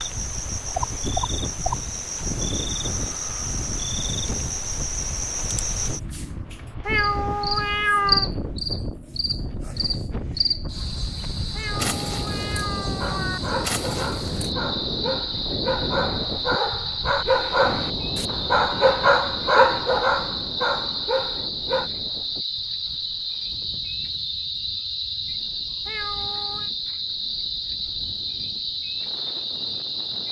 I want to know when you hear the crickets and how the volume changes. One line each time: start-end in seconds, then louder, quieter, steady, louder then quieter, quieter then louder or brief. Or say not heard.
0.0-30.2 steady.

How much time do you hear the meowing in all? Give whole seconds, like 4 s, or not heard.
4 s.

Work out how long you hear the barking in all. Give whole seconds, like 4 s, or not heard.
9 s.